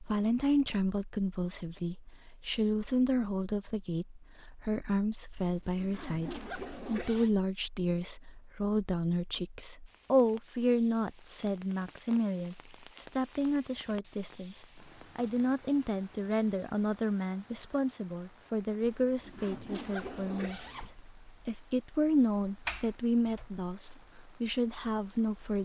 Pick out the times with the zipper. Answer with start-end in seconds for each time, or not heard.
5.3-7.3, 18.8-20.9.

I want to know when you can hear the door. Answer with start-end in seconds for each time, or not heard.
22.6-23.4.